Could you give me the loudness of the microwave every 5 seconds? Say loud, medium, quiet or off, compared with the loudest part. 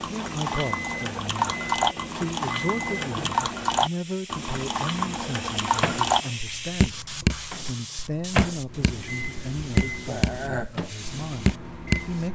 loud, loud, medium.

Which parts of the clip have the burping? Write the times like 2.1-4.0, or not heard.
10.1-10.8.